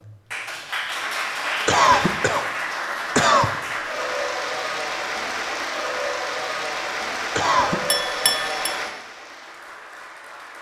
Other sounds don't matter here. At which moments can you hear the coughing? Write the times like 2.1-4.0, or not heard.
1.6-3.5, 7.3-7.8.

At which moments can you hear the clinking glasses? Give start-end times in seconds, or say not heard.
7.9-8.8.